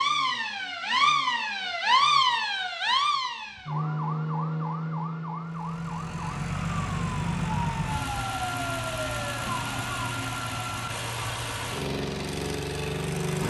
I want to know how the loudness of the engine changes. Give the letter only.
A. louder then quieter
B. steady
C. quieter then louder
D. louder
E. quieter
B.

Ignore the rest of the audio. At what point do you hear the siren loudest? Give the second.
2 s.